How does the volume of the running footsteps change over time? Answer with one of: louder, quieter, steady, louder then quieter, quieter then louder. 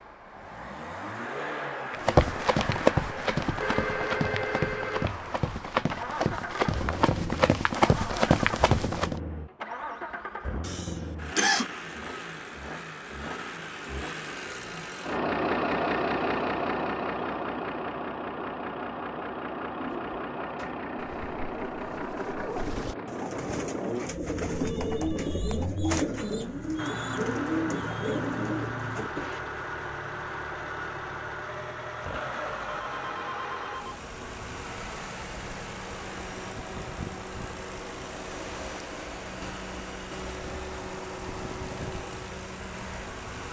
quieter then louder.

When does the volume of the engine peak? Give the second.
16 s.